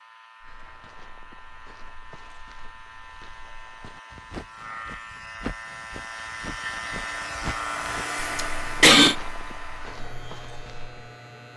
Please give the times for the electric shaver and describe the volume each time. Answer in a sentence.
The electric shaver can be heard from 0.0 to 11.5 s, getting louder then quieter.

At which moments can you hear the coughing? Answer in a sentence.
The coughing can be heard from 7.9 to 9.2 s.